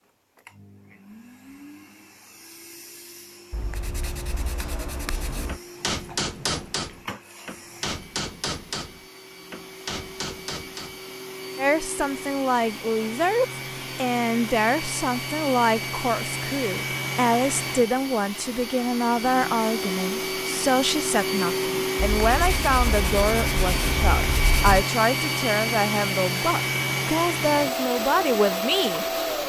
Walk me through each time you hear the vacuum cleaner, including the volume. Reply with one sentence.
You can hear the vacuum cleaner from 0.0 to 29.4 s, getting louder.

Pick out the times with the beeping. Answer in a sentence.
You can't hear the beeping here.